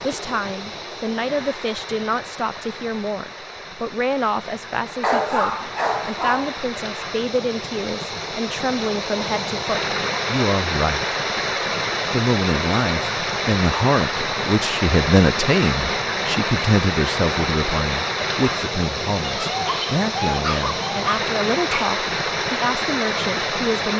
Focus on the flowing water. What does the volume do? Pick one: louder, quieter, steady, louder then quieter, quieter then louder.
louder.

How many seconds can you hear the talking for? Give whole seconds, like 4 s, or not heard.
23 s.